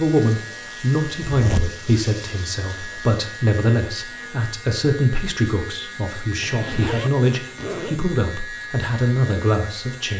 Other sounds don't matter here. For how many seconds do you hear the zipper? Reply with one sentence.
The zipper can be heard for 2 seconds in total.